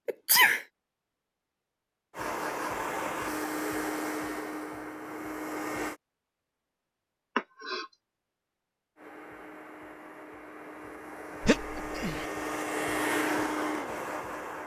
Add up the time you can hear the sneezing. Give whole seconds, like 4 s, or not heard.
2 s.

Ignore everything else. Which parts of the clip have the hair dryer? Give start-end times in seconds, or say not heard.
2.1-6.0, 8.9-14.6.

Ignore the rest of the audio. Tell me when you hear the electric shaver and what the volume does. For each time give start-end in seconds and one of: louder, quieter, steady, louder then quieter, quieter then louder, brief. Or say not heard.
not heard.